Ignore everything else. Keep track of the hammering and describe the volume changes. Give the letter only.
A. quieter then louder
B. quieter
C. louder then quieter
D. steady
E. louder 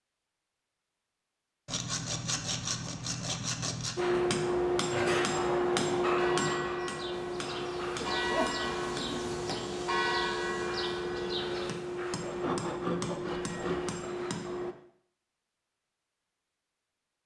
B.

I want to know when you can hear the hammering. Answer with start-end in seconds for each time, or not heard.
4.0-14.8.